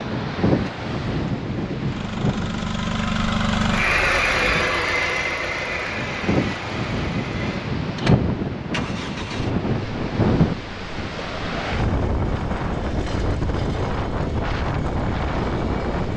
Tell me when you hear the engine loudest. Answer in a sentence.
The volume of the engine peaks at 4 seconds.